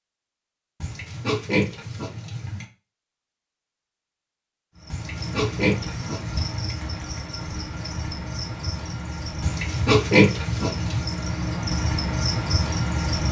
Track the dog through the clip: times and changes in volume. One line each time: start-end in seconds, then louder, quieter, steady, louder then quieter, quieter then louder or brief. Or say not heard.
not heard.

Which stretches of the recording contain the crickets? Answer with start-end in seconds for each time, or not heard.
4.8-13.2.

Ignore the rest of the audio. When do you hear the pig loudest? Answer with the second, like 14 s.
10 s.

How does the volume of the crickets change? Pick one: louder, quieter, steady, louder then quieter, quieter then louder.
louder.